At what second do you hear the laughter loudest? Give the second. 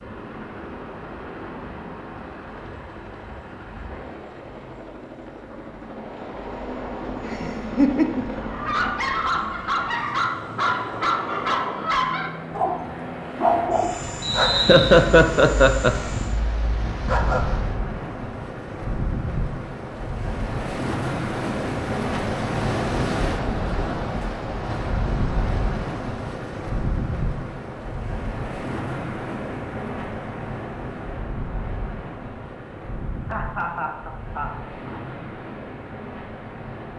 15 s.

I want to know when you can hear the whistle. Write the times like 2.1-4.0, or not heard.
14.2-14.9.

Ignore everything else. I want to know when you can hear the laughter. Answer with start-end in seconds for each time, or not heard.
7.2-8.2, 14.5-15.9, 33.2-35.0.